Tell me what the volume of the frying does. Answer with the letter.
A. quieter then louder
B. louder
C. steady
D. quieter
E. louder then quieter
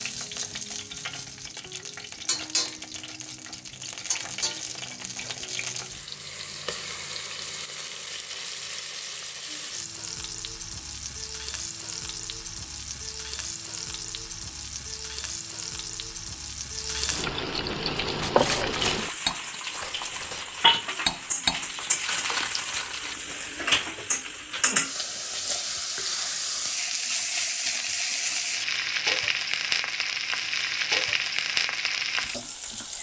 B.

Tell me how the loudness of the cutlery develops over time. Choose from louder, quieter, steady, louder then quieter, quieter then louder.
louder then quieter.